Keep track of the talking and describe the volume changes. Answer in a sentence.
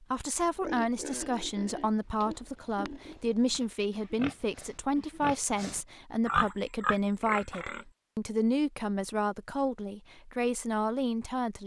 The volume of the talking stays about the same.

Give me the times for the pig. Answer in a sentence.
The pig can be heard from 0.2 to 7.8 s.